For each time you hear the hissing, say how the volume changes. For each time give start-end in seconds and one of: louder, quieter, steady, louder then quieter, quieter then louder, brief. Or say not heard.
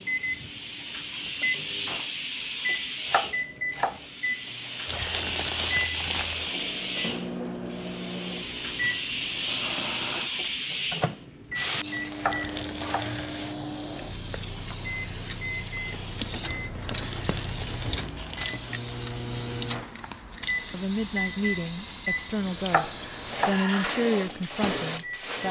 0.0-25.4 steady.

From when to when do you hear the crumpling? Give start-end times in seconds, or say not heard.
4.8-6.5, 12.3-13.4, 17.1-18.6.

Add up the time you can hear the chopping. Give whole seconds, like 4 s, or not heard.
3 s.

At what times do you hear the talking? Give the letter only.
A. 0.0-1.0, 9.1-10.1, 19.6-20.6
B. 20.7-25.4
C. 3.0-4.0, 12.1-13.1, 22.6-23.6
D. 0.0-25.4
B.